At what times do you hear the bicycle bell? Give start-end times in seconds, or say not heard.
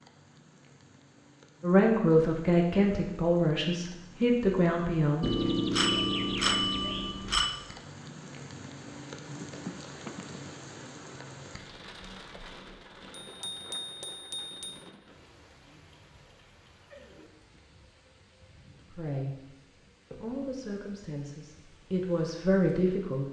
5.2-7.5, 13.2-14.8.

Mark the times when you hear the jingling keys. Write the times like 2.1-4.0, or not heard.
9.4-10.4.